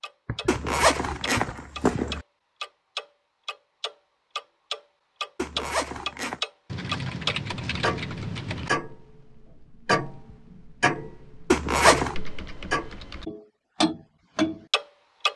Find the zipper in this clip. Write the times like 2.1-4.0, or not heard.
0.5-2.2, 5.3-6.4, 11.5-12.2.